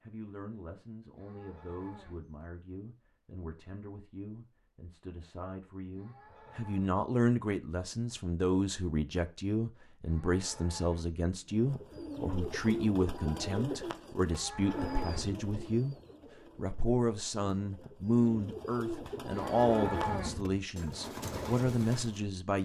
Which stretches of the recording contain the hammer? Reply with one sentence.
The hammer can't be heard in this clip.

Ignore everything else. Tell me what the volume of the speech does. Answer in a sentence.
The loudness of the speech goes up.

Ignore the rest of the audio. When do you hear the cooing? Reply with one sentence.
You can hear the cooing from 11.4 to 22.2 s.